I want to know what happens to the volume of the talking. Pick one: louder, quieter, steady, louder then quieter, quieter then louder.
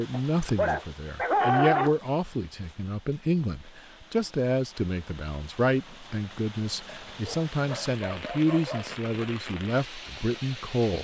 steady.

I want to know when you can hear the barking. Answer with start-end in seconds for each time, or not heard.
0.1-1.9, 7.1-8.9.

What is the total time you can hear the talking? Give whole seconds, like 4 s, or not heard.
11 s.